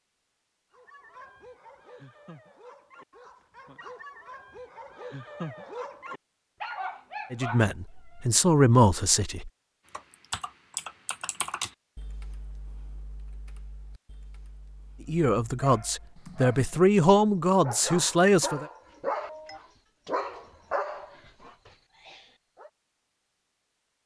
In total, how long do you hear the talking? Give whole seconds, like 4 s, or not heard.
6 s.